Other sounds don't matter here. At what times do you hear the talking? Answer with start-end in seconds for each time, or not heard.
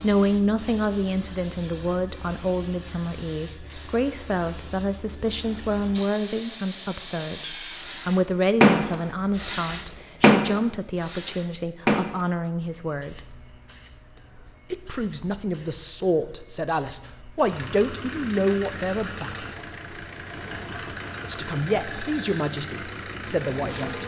0.0-13.3, 14.7-19.4, 21.2-24.0.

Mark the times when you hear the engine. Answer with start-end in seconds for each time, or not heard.
17.4-24.0.